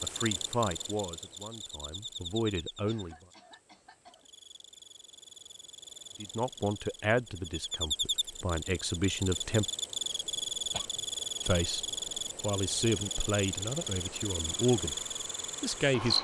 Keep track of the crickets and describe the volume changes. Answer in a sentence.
The volume of the crickets goes down, then up.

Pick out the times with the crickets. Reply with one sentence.
You can hear the crickets from 0.0 to 16.1 s.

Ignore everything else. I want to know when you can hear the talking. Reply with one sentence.
You can hear the talking from 0.0 to 3.1 s, from 6.2 to 9.7 s, from 11.4 to 14.9 s and from 15.6 to 16.1 s.